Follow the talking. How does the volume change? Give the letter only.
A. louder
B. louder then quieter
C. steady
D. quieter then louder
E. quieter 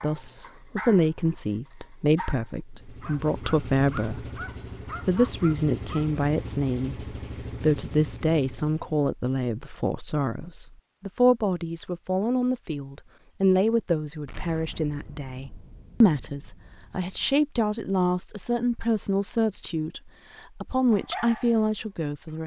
C.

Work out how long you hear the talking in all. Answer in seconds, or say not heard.
22 s.